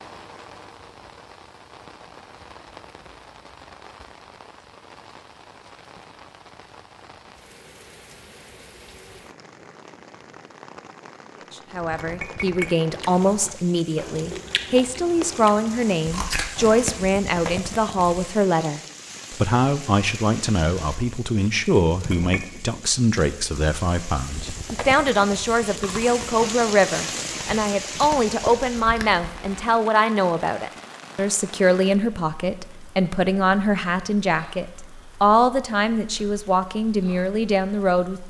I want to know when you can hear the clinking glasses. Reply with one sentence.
The clinking glasses can be heard from 11.7 to 12.7 s and from 21.9 to 22.4 s.